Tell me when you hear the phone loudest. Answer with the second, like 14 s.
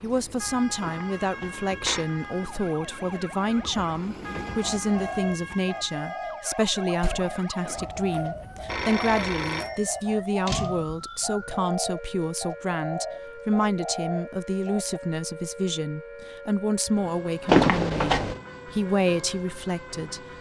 18 s.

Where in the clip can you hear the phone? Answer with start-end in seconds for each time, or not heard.
0.8-2.0, 7.7-10.0, 17.4-18.4.